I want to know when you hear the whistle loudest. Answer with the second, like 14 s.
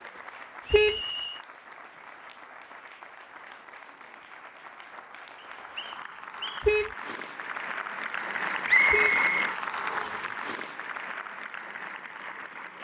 9 s.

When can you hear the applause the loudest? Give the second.
9 s.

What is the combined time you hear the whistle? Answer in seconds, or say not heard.
4 s.